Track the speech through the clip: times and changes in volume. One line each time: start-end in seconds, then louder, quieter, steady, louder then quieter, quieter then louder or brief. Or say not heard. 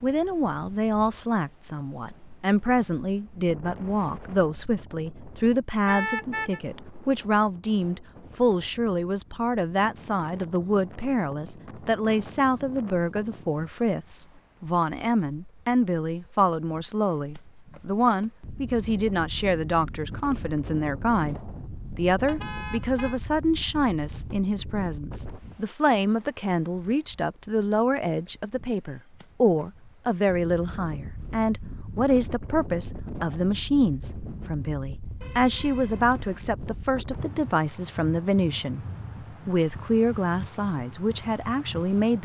0.0-38.8 steady
39.5-42.2 brief.